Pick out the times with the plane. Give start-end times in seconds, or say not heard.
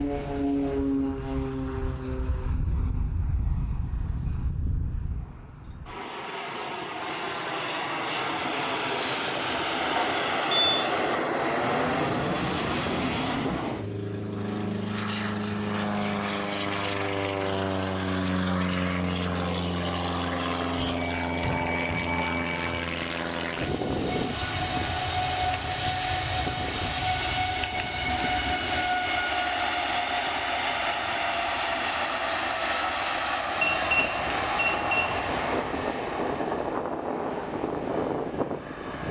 0.0-39.0.